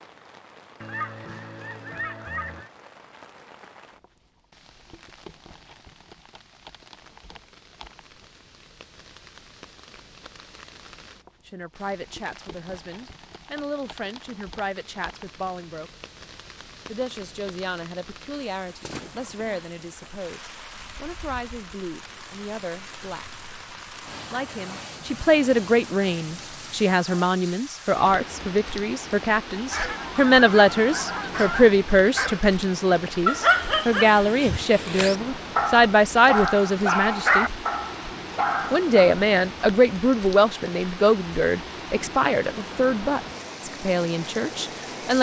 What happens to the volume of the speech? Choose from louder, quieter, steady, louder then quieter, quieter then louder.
louder.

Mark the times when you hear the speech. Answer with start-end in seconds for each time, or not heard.
11.4-15.9, 16.9-23.3, 24.3-37.5, 38.7-45.1.